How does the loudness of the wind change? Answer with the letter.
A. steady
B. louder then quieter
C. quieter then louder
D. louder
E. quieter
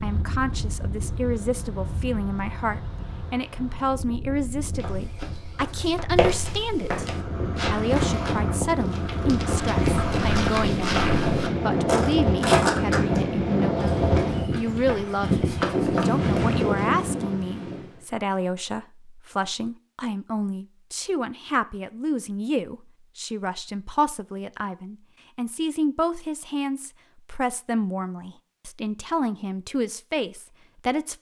D.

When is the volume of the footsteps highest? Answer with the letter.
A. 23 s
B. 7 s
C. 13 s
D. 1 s
C.